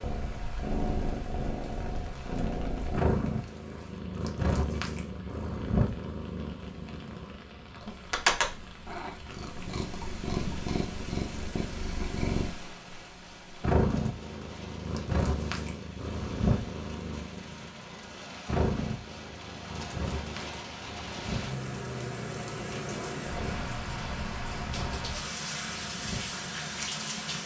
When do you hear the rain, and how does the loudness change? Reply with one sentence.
The rain can be heard from 0.0 to 27.4 s, getting louder.